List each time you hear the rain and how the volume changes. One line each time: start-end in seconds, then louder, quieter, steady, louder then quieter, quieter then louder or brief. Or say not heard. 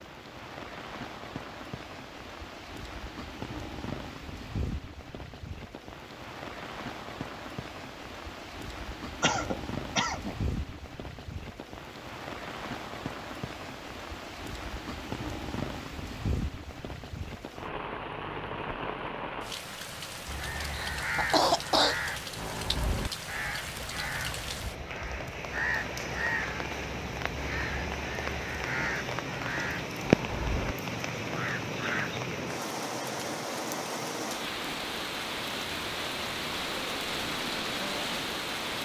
0.0-38.8 louder.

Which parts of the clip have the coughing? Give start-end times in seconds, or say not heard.
9.2-10.3, 20.7-21.9.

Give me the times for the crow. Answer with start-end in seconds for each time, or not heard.
20.2-32.2.